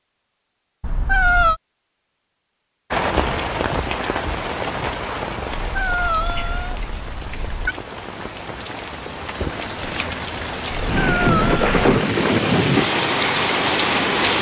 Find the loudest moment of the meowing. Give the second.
1 s.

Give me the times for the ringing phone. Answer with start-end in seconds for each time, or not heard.
not heard.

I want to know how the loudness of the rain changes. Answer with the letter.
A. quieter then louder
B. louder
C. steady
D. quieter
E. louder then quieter
A.